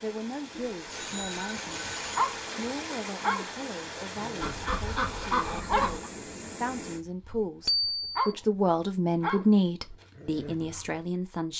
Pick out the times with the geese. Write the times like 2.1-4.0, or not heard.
4.4-6.1.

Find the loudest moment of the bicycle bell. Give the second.
8 s.